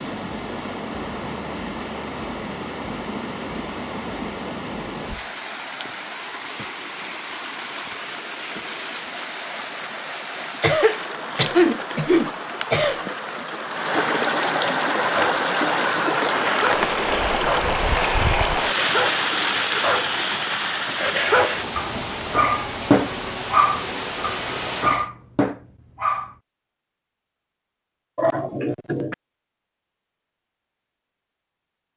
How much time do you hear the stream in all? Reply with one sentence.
You can hear the stream for 25 seconds altogether.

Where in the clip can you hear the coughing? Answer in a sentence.
You can hear the coughing from 10.6 to 13.0 s and from 28.1 to 29.1 s.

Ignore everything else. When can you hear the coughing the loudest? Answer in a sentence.
The loudest moment of the coughing is at 12 seconds.